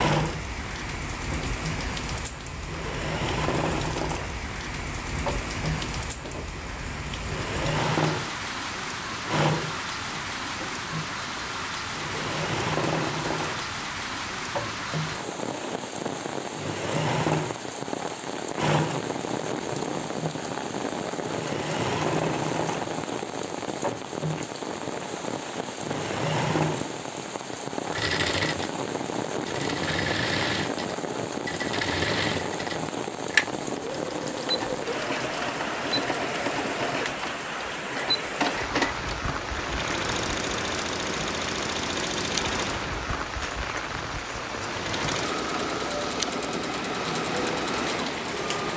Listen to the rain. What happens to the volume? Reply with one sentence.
The volume of the rain stays about the same.